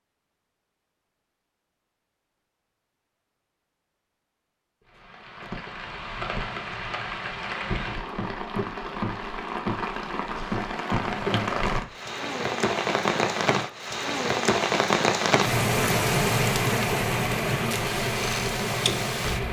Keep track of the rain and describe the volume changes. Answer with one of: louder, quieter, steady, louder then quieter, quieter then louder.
louder.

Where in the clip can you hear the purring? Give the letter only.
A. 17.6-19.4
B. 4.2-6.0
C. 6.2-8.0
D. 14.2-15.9
A.